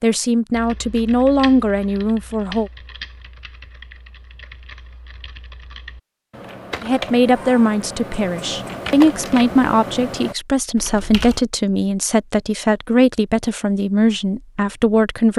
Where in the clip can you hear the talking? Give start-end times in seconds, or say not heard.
0.0-2.7, 6.8-15.3.